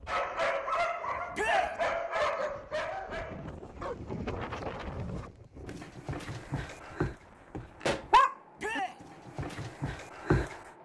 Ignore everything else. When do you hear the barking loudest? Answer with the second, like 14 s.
8 s.